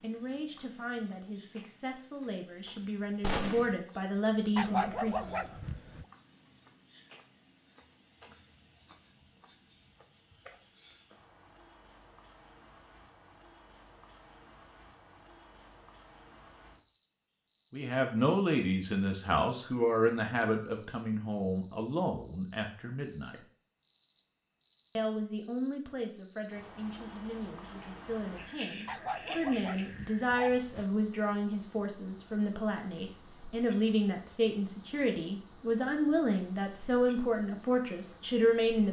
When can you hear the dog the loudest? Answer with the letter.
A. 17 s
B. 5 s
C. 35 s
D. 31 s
B.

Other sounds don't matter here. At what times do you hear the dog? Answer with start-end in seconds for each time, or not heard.
4.5-6.0, 28.9-30.9.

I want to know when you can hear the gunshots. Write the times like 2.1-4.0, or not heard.
3.2-3.8.